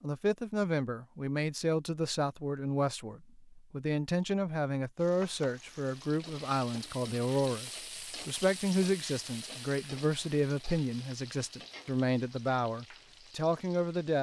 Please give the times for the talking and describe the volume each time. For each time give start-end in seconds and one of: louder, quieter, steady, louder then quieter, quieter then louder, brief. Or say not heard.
0.0-14.1 steady.